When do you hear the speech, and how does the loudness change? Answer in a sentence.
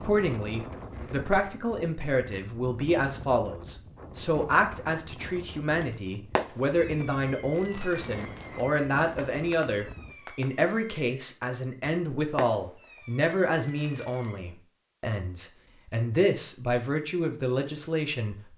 The speech can be heard from 0.0 to 18.5 s, at a steady volume.